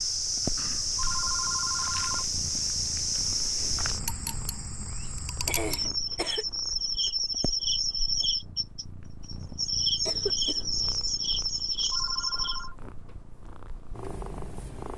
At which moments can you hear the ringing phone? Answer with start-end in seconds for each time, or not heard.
0.9-2.2, 11.8-12.8.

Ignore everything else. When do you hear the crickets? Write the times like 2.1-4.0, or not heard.
0.0-12.7.